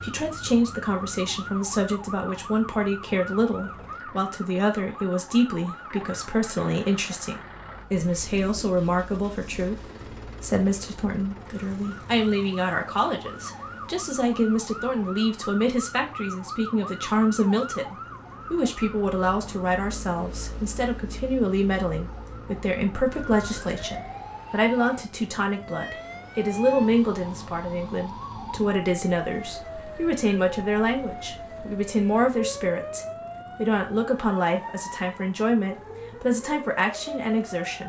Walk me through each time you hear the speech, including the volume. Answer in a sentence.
The speech can be heard from 0.0 to 37.8 s, at a steady volume.